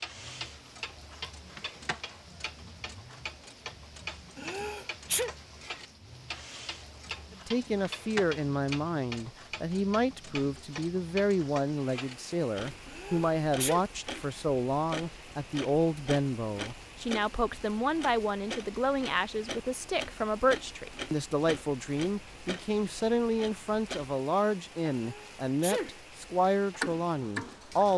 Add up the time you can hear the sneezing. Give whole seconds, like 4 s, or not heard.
3 s.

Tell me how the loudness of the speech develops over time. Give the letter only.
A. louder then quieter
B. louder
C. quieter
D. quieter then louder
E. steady
E.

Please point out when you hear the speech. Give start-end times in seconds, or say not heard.
7.5-27.9.